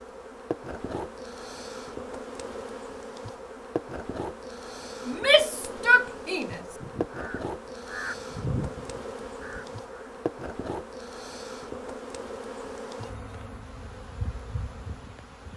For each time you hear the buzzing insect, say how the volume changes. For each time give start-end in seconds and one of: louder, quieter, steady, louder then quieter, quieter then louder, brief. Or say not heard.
0.0-15.5 steady.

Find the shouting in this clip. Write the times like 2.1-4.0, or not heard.
5.0-6.6.